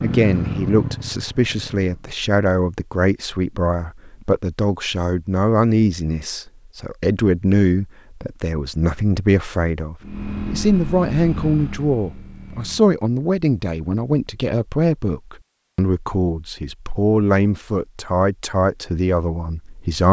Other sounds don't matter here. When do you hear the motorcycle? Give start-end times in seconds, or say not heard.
0.0-2.0, 10.0-12.9.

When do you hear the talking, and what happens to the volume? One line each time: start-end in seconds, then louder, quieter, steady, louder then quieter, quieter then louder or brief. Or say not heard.
0.0-20.0 steady.